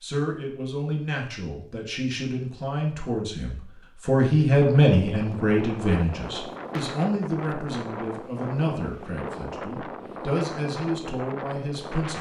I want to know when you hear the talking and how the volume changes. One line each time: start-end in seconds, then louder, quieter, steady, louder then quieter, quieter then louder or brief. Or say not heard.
0.0-12.1 louder then quieter.